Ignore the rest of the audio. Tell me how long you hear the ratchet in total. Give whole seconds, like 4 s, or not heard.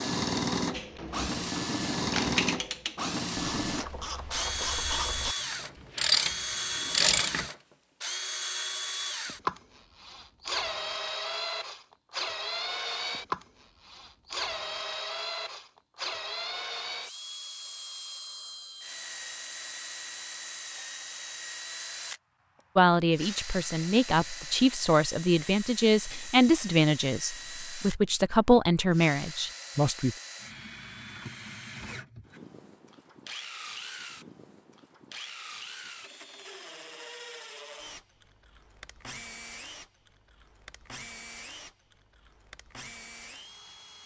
7 s.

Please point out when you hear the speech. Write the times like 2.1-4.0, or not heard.
22.8-30.1.